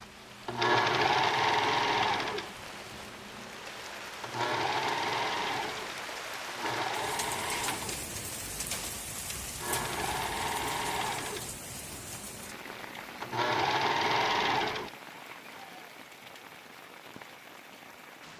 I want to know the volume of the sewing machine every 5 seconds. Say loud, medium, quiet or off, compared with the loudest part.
loud, medium, loud, off.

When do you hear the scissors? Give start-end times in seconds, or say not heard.
not heard.